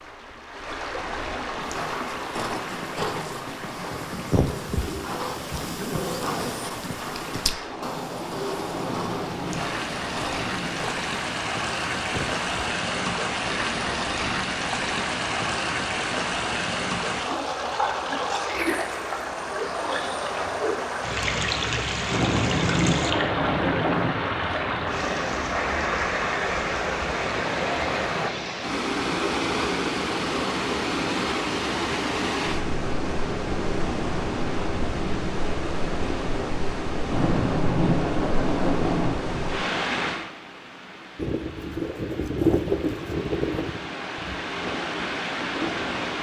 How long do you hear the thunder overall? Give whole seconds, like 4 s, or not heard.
6 s.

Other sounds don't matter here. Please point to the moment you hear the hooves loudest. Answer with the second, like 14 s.
43 s.